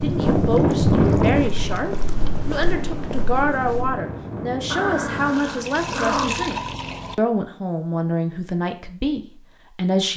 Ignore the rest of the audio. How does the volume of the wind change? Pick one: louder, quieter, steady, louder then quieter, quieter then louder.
quieter.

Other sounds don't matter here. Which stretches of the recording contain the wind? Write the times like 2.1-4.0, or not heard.
0.0-5.3.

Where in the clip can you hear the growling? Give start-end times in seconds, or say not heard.
4.7-6.5.